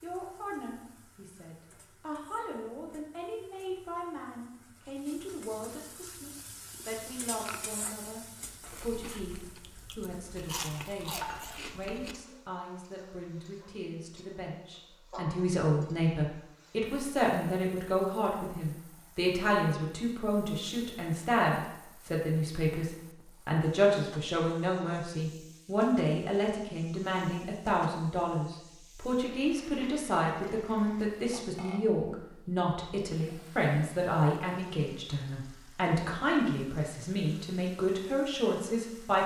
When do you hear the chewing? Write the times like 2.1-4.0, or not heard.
6.0-12.2.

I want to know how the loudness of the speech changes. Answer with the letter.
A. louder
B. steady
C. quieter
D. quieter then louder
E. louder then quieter
A.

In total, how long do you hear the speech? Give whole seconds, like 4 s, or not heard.
39 s.